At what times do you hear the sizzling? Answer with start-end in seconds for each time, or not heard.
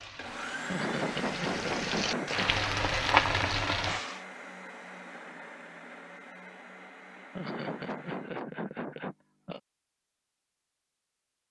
0.0-4.2.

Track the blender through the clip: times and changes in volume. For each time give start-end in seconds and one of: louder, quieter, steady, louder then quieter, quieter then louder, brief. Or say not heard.
0.0-8.4 quieter.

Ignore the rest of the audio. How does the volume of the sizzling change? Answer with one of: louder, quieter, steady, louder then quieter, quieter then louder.
louder.